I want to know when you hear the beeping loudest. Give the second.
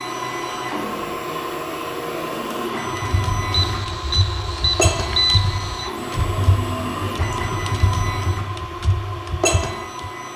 5 s.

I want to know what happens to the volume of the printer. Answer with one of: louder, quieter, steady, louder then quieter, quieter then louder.
steady.